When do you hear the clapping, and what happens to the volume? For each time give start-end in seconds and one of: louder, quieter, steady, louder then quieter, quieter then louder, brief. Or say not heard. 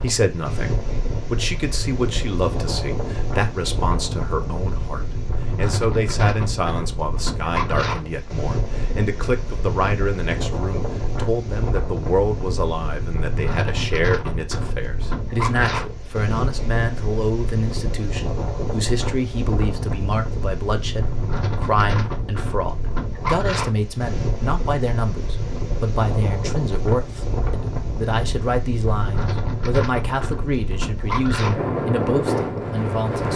not heard.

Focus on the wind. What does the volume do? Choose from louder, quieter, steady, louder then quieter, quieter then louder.
steady.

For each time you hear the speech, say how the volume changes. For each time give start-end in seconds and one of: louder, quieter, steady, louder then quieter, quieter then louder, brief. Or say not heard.
0.0-33.3 steady.